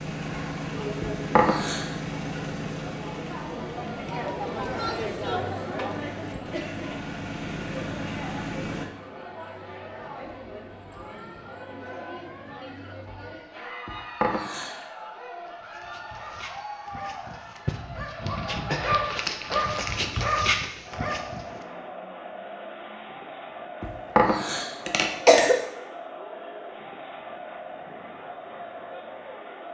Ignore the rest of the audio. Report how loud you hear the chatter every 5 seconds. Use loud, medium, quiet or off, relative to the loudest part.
loud, loud, medium, medium, medium, medium.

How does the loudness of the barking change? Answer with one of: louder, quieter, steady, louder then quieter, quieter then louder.
louder.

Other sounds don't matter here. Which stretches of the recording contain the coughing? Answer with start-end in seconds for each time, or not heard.
1.0-1.9, 13.8-14.8, 23.8-25.6.